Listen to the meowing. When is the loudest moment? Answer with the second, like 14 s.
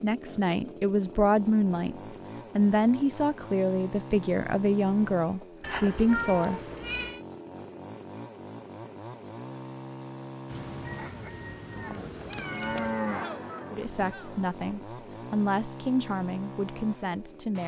6 s.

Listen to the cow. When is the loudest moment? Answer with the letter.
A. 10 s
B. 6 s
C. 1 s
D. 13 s
D.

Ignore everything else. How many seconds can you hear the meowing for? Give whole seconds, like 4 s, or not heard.
4 s.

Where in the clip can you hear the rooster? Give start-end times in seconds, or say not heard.
10.8-12.1.